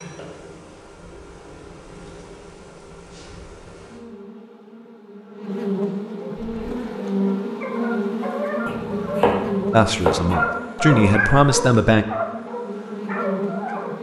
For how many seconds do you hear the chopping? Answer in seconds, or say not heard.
2 s.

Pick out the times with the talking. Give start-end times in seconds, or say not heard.
9.7-12.1.